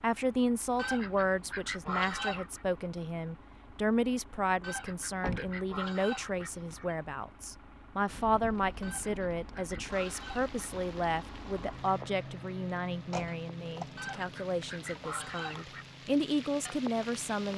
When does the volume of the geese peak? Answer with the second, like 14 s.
2 s.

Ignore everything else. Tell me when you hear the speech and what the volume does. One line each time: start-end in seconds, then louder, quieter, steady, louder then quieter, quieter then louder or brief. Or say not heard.
0.0-17.5 steady.